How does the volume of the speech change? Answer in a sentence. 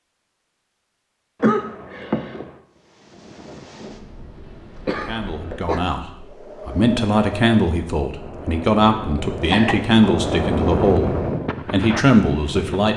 The volume of the speech goes up.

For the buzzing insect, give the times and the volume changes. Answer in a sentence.
The buzzing insect can't be heard in this clip.